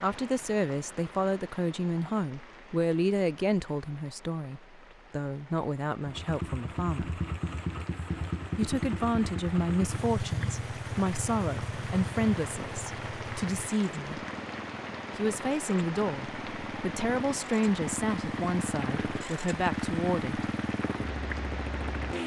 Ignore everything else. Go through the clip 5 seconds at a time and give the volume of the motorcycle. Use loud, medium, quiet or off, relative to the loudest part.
off, loud, loud, loud, loud.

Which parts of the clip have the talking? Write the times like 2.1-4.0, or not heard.
0.0-7.2, 8.6-14.2, 15.2-20.5.